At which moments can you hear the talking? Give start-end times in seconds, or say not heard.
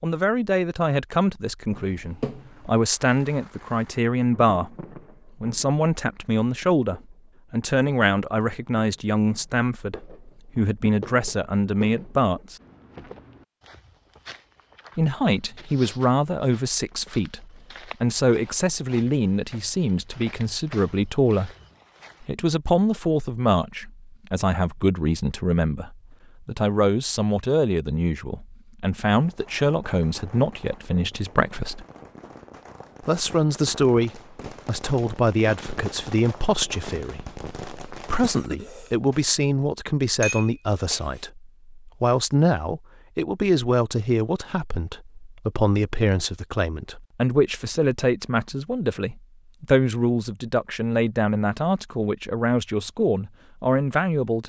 0.0-4.8, 5.4-12.6, 14.9-21.5, 22.2-31.9, 33.0-54.4.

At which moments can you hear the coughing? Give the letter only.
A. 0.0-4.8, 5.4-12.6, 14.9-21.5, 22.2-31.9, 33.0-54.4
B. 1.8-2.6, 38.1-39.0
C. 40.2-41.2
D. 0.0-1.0
B.